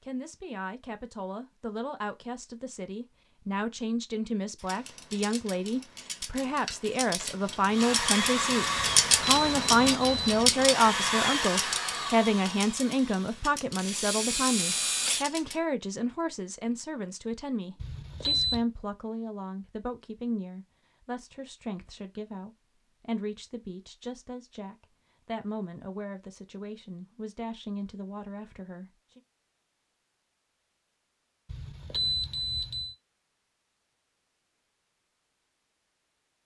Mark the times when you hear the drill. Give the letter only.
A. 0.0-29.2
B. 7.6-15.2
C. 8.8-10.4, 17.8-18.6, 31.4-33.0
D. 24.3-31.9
B.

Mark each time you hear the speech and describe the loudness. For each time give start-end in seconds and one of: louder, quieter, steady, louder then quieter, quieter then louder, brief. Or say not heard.
0.0-29.2 louder then quieter.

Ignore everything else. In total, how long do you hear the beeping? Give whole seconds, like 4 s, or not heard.
4 s.